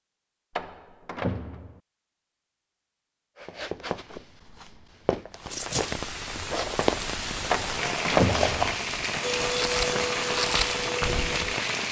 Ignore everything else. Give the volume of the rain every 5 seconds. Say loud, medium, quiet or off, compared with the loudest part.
off, loud, loud.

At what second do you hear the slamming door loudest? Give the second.
8 s.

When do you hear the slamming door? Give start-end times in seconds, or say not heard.
0.6-1.8, 7.5-8.7.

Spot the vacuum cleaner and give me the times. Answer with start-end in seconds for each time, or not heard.
9.2-11.8.